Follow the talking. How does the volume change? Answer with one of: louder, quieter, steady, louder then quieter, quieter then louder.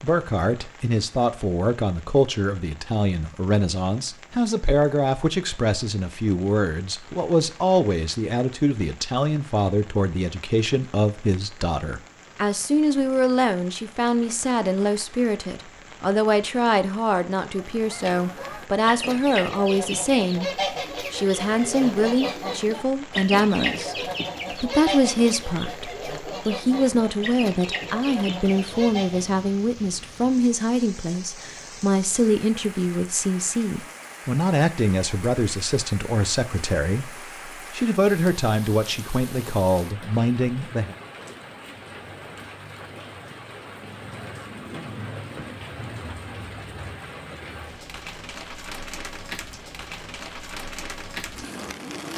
steady.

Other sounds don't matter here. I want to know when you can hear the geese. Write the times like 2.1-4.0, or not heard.
17.5-29.4.